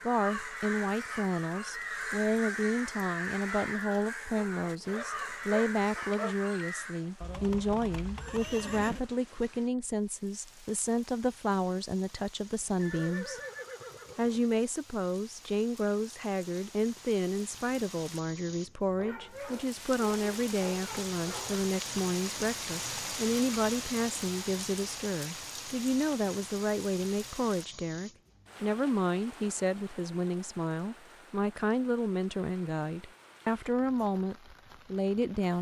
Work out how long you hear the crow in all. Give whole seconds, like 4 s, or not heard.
7 s.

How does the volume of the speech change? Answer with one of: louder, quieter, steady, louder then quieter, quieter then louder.
steady.